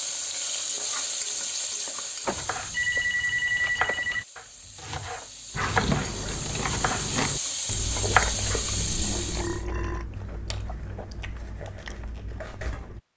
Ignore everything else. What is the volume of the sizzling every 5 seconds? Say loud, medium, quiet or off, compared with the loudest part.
loud, loud, off.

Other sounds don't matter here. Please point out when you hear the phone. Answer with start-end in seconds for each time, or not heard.
2.2-4.2.